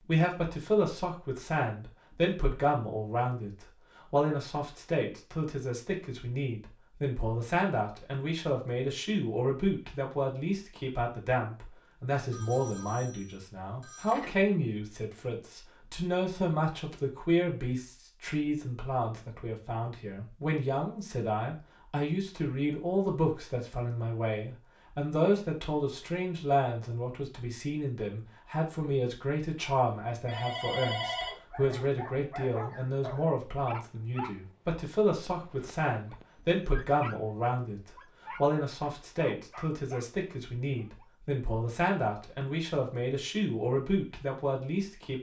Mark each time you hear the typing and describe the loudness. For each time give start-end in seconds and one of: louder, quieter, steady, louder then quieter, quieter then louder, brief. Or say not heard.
not heard.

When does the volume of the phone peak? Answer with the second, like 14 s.
31 s.